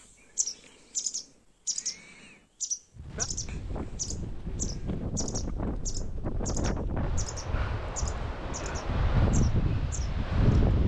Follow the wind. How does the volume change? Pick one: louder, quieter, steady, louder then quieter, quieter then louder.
louder.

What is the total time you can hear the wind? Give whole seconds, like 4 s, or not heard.
8 s.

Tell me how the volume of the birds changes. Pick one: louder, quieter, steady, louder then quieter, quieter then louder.
quieter.